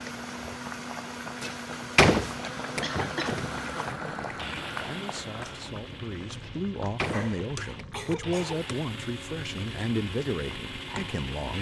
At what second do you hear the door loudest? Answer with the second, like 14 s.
2 s.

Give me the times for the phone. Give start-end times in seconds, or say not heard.
not heard.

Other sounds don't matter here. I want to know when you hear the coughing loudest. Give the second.
3 s.